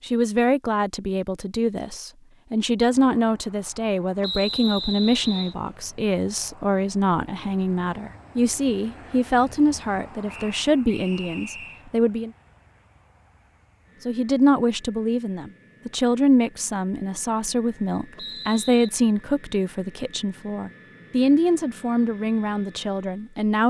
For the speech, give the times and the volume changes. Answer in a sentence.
You can hear the speech from 0.0 to 12.3 s, at a steady volume; and from 14.1 to 23.6 s, at a steady volume.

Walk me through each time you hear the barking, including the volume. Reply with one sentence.
You can't hear the barking here.